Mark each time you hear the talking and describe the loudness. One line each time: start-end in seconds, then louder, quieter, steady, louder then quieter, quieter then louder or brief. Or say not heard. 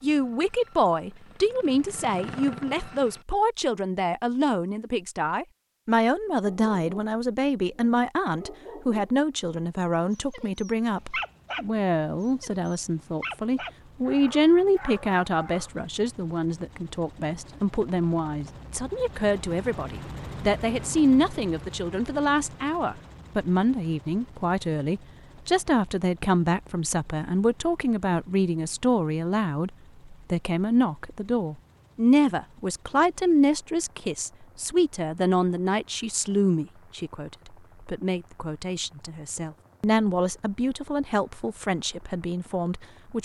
0.0-43.1 steady.